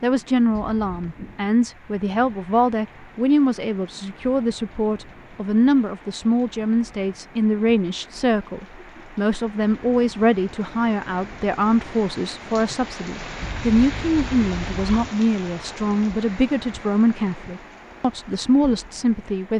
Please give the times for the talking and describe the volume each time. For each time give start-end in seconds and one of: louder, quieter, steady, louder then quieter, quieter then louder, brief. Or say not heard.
0.0-19.5 steady.